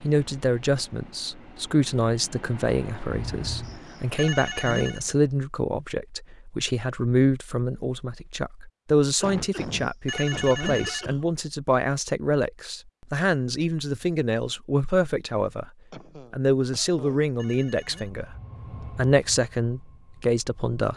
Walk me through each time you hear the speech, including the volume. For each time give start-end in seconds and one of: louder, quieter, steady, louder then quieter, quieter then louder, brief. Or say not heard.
0.0-15.7 steady
16.3-18.4 brief
18.9-20.9 brief.